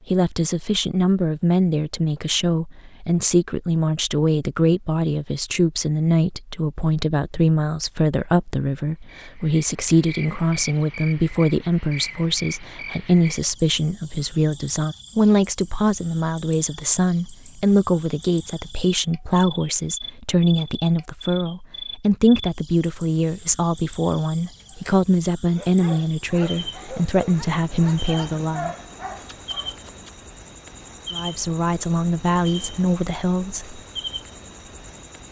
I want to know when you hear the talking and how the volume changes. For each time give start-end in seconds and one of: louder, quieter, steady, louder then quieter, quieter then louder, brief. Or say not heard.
0.1-28.8 steady
31.1-33.8 brief.